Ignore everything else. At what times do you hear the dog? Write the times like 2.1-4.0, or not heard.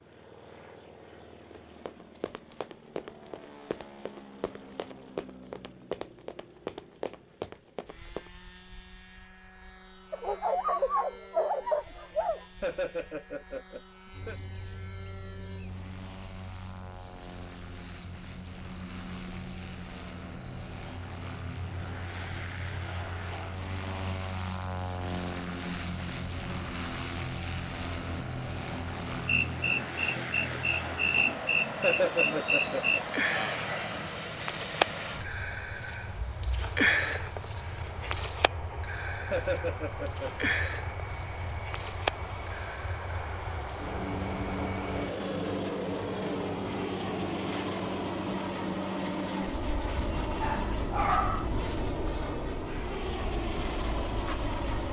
10.1-12.4, 50.0-51.5.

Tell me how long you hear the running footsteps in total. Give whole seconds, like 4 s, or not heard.
7 s.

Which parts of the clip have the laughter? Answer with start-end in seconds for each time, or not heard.
12.6-14.3, 31.8-33.0, 39.3-40.5.